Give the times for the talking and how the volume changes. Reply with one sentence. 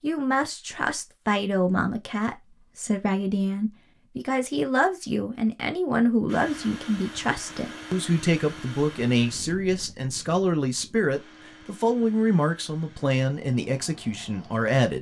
The talking can be heard from 0.0 to 14.9 s, at a steady volume.